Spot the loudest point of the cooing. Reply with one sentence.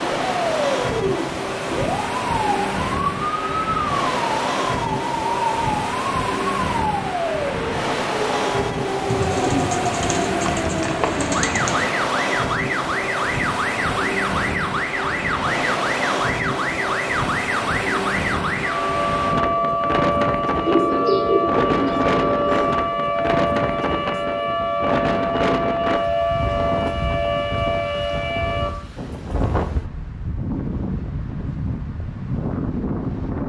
The volume of the cooing peaks at 21 seconds.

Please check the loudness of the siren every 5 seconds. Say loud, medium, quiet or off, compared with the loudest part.
loud, loud, loud, loud, loud, loud, off.